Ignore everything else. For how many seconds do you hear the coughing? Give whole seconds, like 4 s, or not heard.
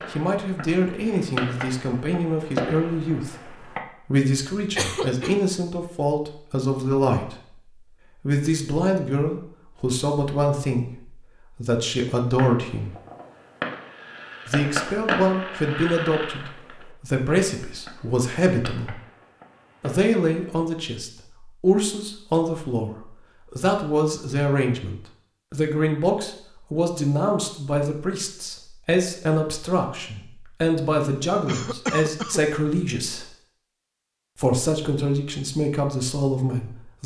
2 s.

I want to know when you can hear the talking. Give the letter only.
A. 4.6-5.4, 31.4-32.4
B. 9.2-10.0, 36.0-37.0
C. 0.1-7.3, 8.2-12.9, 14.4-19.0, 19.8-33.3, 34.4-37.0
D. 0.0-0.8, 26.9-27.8
C.